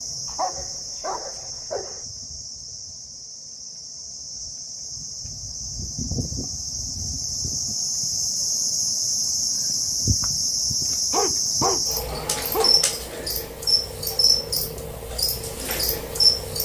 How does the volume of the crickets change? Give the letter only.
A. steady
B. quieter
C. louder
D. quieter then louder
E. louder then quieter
C.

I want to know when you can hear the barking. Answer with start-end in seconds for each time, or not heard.
0.2-2.0, 11.1-12.8.